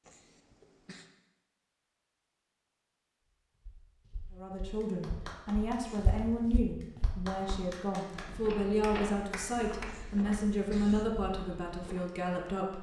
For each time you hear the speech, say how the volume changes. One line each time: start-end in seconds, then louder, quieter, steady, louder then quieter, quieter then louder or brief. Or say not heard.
4.3-12.7 steady.